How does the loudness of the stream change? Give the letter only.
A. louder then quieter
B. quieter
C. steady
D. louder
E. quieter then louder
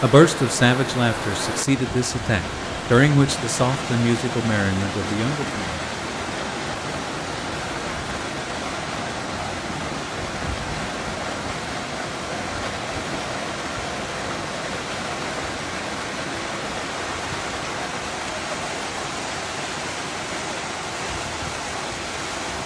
C.